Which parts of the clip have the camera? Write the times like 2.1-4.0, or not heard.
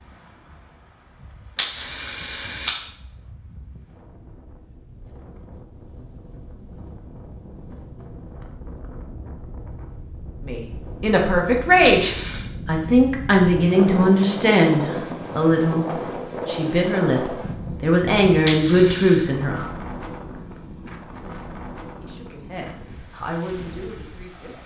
1.6-2.8, 11.8-12.5, 18.4-19.2.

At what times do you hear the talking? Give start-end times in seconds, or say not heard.
10.4-15.8, 16.4-19.6, 22.0-24.6.